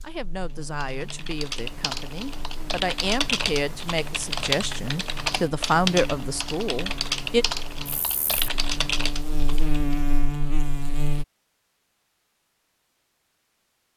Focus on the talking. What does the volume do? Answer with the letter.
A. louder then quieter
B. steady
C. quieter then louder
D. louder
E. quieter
D.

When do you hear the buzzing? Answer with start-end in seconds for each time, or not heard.
0.0-11.2.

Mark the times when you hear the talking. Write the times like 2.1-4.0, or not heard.
0.0-7.5.